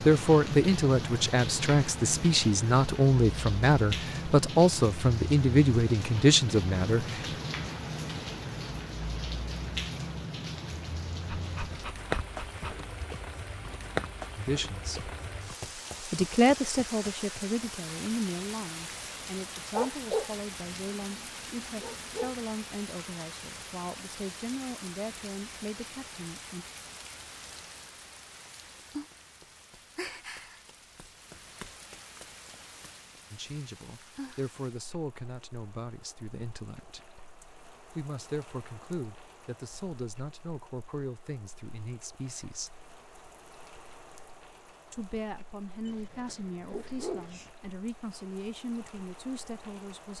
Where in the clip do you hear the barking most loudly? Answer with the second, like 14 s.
20 s.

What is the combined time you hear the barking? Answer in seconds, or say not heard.
6 s.